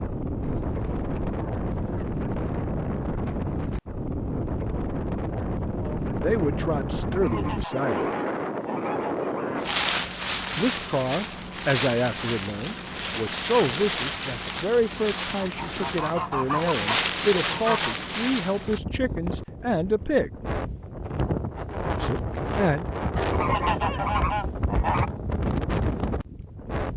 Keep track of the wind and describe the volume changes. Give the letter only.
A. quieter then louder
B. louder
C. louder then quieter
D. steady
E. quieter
D.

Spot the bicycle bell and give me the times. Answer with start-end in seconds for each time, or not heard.
not heard.